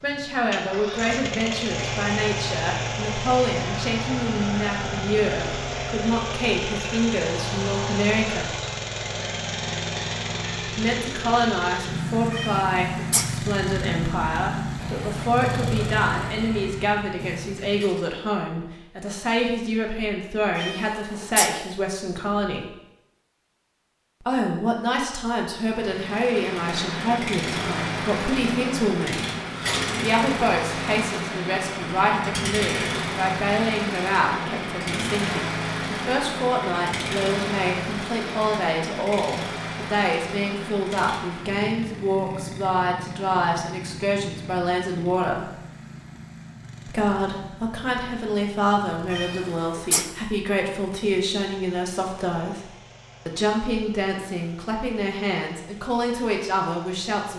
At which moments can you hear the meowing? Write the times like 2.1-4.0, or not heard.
12.3-13.3, 20.6-21.6, 49.1-50.1.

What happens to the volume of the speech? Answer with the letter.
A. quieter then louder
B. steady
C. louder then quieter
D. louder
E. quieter
B.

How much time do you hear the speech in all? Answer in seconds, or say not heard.
51 s.